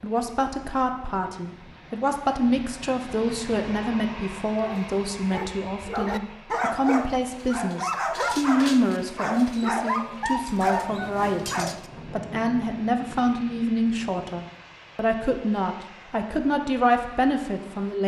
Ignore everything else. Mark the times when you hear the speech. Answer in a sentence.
The speech can be heard from 0.0 to 18.0 s.